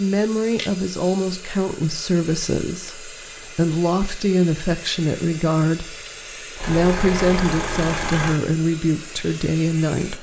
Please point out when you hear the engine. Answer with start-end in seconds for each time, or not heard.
6.5-8.4.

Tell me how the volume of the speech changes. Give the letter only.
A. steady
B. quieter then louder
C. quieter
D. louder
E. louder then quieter
A.